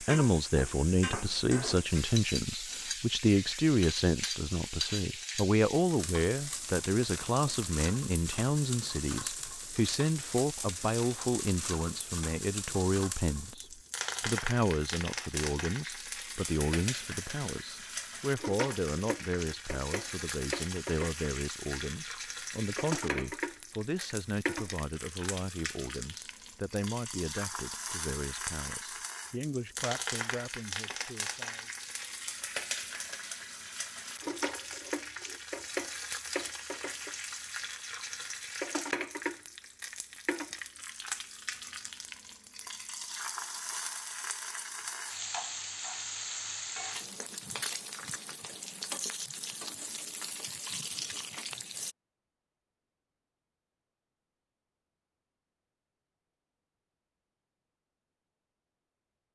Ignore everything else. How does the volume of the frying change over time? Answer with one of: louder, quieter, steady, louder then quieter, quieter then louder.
steady.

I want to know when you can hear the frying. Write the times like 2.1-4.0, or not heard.
0.0-52.0.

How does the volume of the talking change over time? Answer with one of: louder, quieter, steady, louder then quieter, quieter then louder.
quieter.